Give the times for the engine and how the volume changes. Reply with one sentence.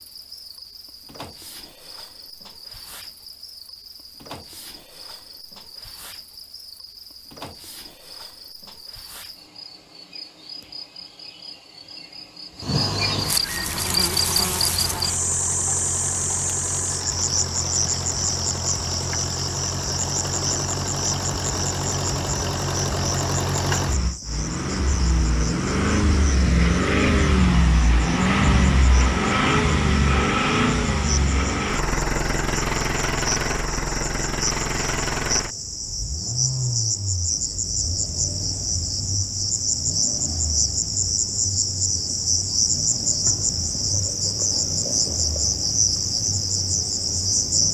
The engine can be heard from 13.6 to 47.6 s, getting louder then quieter.